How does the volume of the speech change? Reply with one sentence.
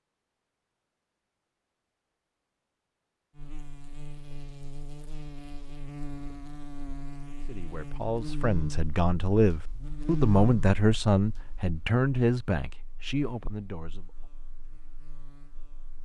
The volume of the speech goes up, then down.